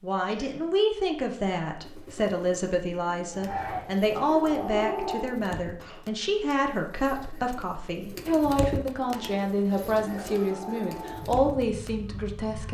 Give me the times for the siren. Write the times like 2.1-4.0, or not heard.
3.3-5.4, 9.1-12.6.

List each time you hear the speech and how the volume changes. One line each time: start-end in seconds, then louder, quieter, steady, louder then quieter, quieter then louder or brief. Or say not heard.
0.0-12.6 steady.